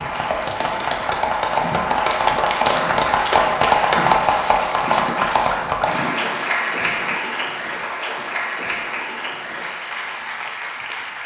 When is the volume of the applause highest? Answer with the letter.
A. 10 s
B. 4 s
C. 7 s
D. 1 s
B.